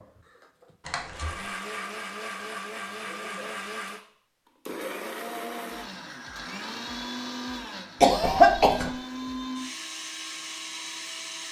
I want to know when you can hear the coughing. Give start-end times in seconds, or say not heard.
0.8-1.4, 8.0-8.9.